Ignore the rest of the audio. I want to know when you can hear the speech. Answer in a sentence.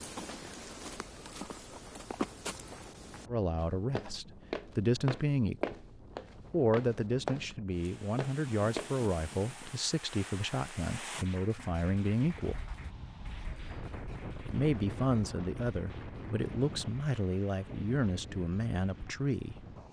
You can hear the speech from 3.2 to 5.8 s, from 6.5 to 12.7 s and from 14.4 to 19.6 s.